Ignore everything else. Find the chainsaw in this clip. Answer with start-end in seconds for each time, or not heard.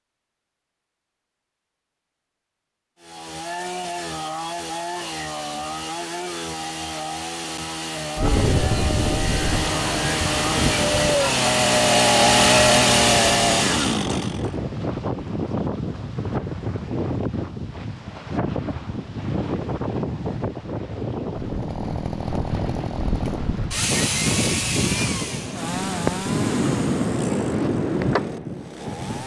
3.0-14.6, 21.3-29.2.